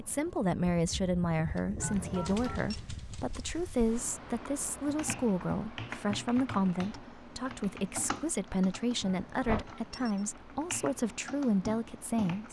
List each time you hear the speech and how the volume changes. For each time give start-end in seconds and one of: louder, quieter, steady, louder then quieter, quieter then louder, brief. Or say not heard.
0.0-12.4 steady.